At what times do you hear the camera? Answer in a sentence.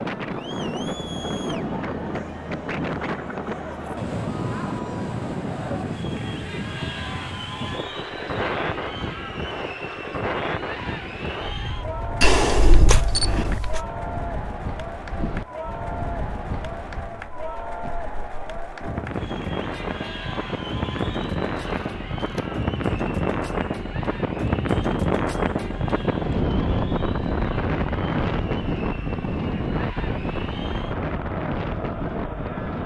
You can hear the camera from 12.2 to 13.8 s and from 21.6 to 22.4 s.